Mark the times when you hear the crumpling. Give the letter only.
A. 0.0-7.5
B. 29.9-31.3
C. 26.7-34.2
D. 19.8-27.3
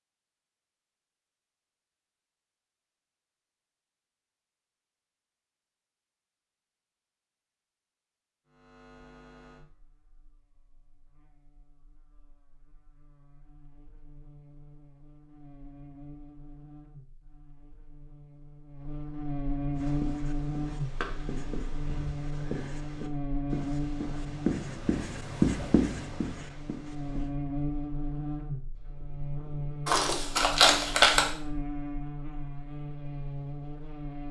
B.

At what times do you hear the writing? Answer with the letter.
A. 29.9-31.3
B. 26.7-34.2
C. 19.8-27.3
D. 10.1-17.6
C.